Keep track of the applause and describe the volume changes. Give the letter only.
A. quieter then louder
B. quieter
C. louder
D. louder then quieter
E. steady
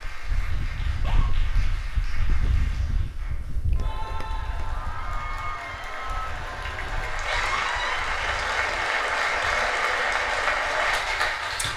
C.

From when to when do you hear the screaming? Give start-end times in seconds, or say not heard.
0.9-1.3, 7.2-8.0.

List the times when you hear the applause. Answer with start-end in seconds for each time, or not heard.
0.0-11.7.